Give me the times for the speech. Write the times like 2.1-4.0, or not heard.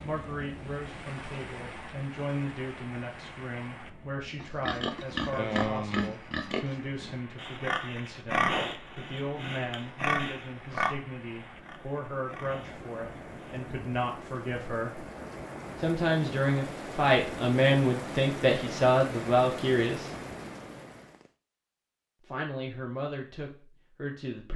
0.0-15.1, 15.8-20.1, 22.2-24.5.